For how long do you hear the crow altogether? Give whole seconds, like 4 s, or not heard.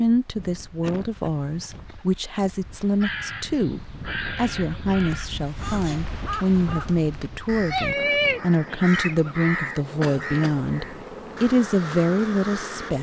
10 s.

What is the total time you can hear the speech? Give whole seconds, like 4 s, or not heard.
13 s.